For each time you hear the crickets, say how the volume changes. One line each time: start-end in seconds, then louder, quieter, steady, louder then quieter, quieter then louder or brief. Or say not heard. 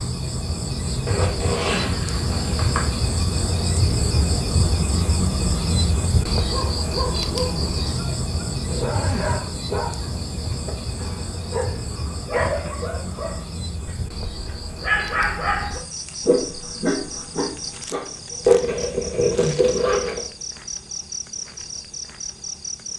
0.0-22.9 quieter.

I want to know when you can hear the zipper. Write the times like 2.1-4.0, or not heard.
1.1-2.9, 8.7-9.4, 18.4-20.2.